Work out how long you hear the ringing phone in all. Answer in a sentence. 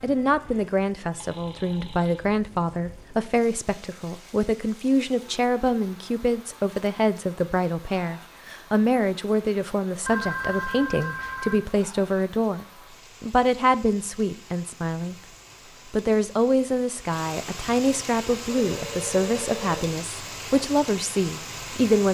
The ringing phone can be heard for 4 seconds in total.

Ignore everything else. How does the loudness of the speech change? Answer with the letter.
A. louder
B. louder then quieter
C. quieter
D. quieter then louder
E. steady
E.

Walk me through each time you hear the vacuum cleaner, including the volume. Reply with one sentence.
The vacuum cleaner can't be heard in this clip.